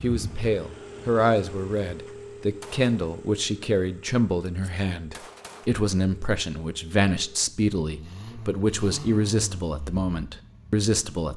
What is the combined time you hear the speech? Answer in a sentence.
The speech can be heard for 11 seconds in total.